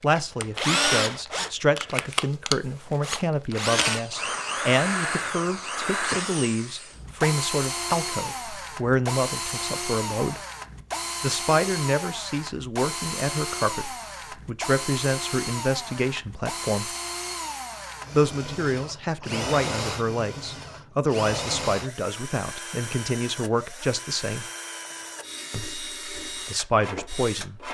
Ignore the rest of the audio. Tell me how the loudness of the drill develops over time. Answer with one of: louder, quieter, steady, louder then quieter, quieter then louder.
quieter.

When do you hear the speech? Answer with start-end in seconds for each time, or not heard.
0.0-10.4, 11.2-16.9, 18.1-24.4, 25.5-27.6.